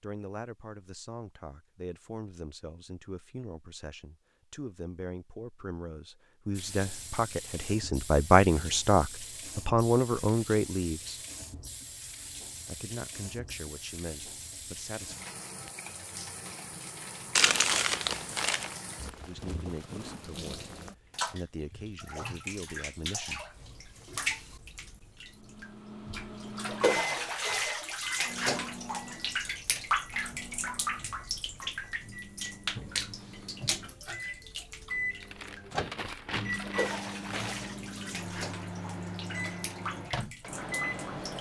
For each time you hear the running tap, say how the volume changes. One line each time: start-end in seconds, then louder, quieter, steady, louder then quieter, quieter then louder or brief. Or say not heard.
6.5-41.3 louder then quieter.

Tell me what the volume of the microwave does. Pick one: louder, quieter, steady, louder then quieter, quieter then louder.
quieter then louder.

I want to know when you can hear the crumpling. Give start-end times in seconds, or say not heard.
17.4-18.7, 35.2-37.7.